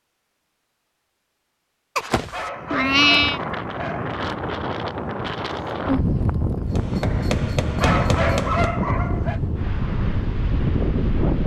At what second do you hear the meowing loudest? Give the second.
3 s.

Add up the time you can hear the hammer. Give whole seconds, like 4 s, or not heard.
2 s.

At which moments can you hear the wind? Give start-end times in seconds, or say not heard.
2.5-11.4.